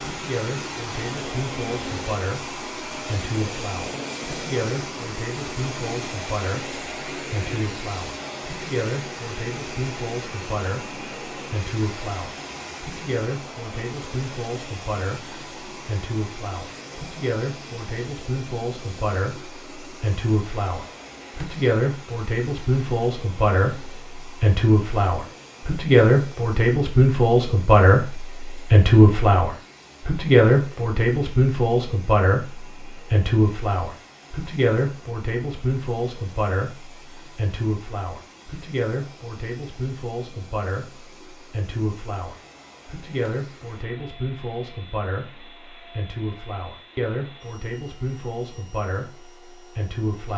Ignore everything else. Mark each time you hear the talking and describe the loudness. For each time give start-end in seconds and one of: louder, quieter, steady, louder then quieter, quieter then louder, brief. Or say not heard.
0.1-50.3 louder then quieter.